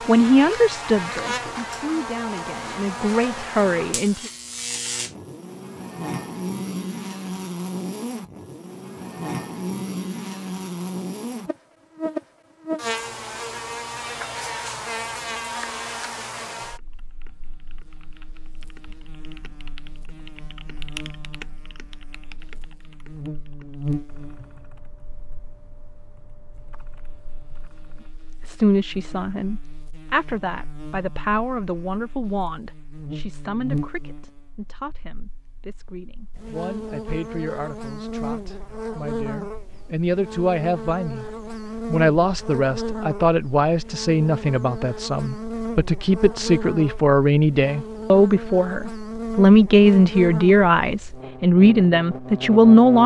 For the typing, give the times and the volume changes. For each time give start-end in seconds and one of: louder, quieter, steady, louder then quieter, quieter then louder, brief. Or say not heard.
16.7-28.3 louder then quieter.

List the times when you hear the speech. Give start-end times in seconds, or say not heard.
0.1-4.2, 28.4-41.2, 41.9-53.0.